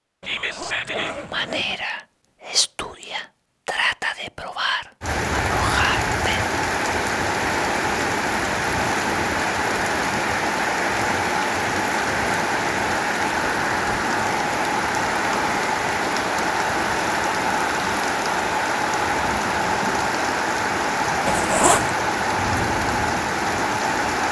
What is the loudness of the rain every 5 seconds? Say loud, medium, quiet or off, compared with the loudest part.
off, loud, loud, loud, loud.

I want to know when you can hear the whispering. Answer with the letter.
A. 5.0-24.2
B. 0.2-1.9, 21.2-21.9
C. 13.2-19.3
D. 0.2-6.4
D.